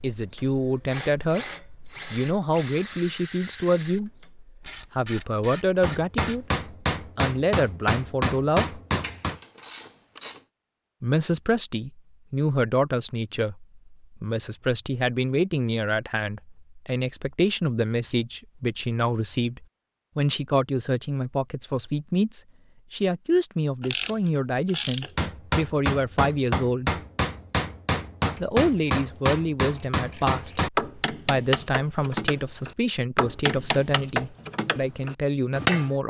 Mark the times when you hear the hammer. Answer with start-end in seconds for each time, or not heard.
5.8-9.4, 25.1-36.0.